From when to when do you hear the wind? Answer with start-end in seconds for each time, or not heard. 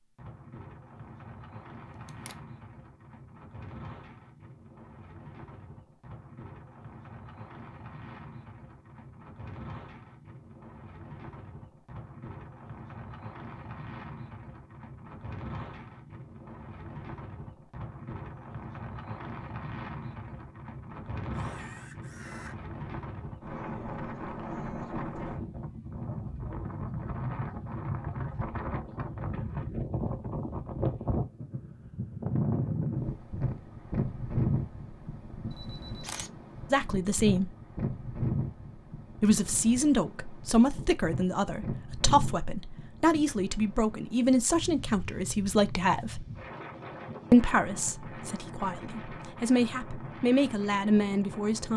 0.0-51.7.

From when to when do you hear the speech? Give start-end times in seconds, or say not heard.
36.7-37.5, 39.2-46.2, 47.3-51.7.